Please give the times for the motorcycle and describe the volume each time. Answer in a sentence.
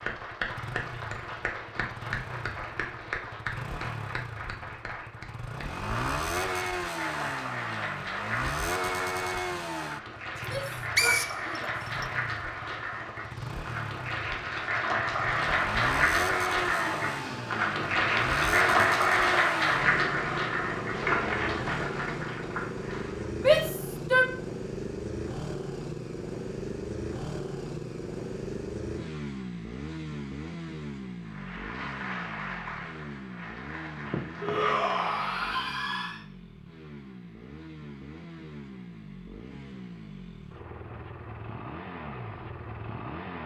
You can hear the motorcycle from 0.0 to 43.4 s, getting quieter.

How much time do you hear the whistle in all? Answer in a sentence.
You can hear the whistle for 2 seconds altogether.